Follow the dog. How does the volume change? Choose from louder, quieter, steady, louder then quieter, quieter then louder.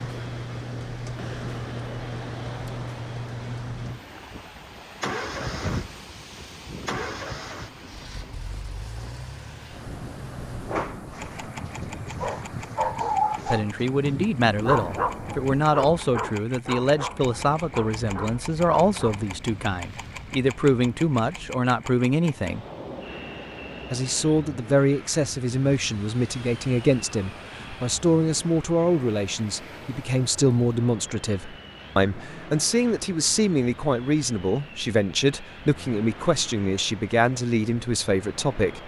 louder then quieter.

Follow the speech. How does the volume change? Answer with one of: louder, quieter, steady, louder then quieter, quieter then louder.
steady.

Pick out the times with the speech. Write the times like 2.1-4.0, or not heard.
13.4-22.6, 23.9-38.8.